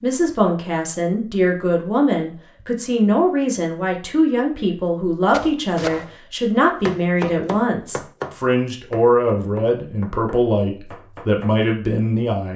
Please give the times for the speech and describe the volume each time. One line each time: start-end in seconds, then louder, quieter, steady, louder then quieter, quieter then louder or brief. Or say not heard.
0.0-12.5 steady.